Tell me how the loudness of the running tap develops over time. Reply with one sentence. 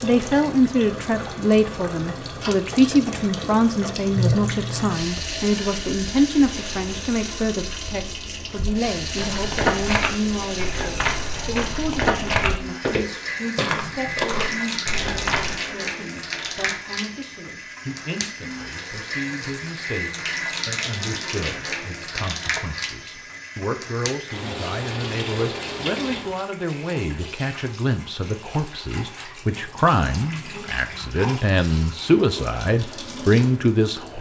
The volume of the running tap goes down.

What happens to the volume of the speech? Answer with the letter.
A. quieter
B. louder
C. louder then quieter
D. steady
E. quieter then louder
E.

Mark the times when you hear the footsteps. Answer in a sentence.
You can hear the footsteps from 9.2 to 15.6 s.